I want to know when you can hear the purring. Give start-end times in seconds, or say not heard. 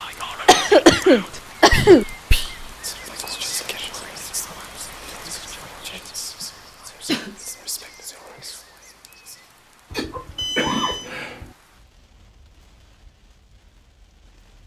not heard.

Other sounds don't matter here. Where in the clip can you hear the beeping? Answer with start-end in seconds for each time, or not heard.
10.3-11.1.